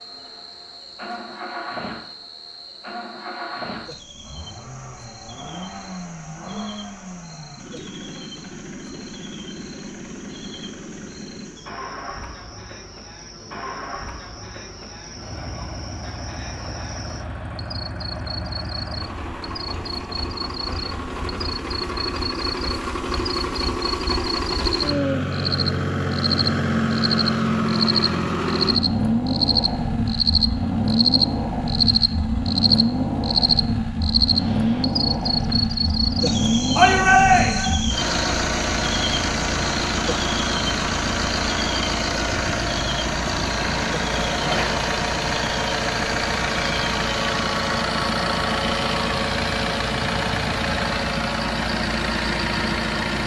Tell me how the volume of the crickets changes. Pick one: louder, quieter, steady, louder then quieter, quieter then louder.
louder then quieter.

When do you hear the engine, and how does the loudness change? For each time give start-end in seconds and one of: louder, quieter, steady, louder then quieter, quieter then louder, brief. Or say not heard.
0.0-53.2 louder.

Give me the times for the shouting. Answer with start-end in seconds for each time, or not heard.
36.8-37.8.